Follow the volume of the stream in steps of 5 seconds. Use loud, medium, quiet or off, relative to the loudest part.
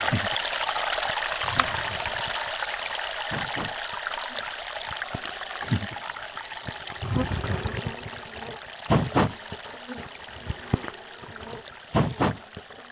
loud, medium, quiet.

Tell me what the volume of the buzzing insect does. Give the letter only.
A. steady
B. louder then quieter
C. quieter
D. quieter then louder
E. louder
E.